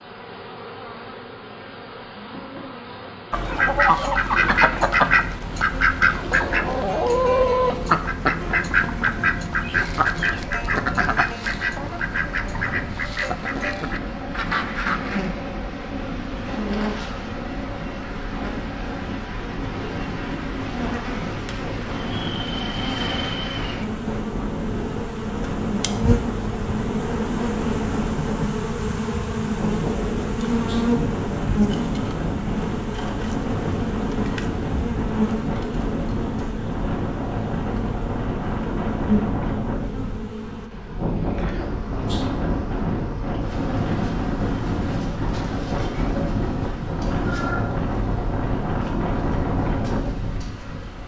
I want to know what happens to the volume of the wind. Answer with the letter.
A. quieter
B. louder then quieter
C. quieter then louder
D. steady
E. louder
E.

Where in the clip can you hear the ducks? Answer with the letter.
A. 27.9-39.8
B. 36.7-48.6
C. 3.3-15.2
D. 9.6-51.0
C.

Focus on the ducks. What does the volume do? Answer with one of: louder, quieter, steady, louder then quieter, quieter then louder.
quieter.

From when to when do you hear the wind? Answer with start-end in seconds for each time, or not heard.
9.6-51.0.